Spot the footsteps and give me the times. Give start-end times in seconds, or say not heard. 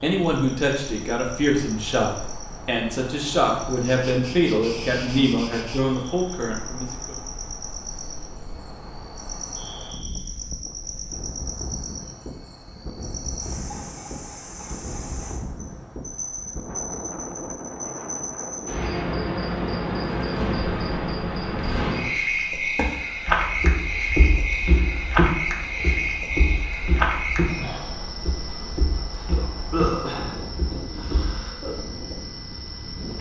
22.8-31.5.